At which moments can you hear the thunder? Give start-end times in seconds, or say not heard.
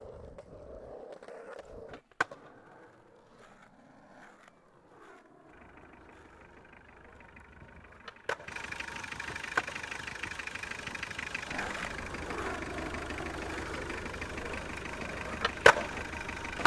not heard.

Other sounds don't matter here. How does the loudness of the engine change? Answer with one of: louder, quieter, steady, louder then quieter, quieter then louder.
louder.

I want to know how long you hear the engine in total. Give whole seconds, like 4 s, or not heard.
11 s.